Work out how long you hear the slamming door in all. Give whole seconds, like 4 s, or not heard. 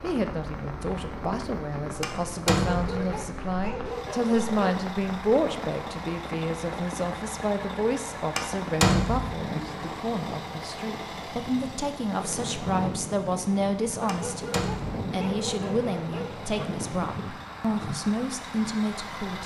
3 s.